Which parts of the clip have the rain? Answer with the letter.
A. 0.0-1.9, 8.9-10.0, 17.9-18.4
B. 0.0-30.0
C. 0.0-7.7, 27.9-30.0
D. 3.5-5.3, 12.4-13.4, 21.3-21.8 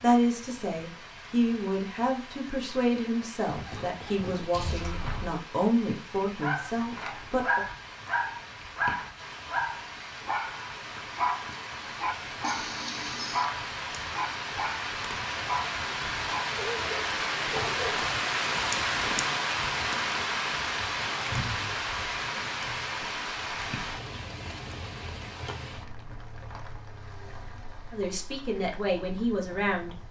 B.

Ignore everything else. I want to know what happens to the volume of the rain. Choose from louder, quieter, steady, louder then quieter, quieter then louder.
louder then quieter.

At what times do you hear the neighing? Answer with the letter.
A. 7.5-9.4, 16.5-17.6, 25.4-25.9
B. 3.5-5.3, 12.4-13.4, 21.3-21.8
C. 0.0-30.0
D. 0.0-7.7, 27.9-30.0
B.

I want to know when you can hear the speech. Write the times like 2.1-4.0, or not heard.
0.0-7.7, 27.9-30.0.